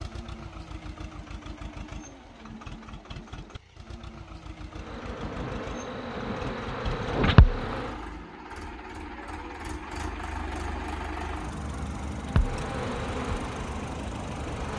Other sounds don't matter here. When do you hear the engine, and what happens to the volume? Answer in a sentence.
You can hear the engine from 0.0 to 14.7 s, getting louder.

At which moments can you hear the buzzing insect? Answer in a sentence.
You can hear the buzzing insect from 4.7 to 8.0 s and from 12.2 to 14.7 s.